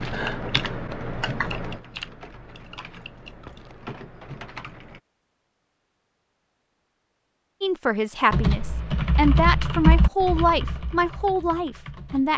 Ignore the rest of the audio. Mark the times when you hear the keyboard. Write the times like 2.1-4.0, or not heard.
0.0-5.0, 8.3-12.3.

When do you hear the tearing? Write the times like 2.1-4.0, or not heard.
not heard.